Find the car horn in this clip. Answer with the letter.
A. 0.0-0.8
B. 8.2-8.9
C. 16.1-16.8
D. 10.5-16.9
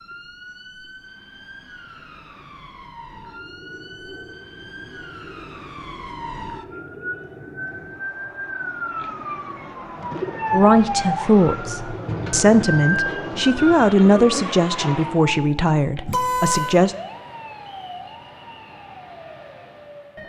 C.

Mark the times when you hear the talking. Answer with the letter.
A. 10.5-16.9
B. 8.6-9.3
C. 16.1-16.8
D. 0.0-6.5
A.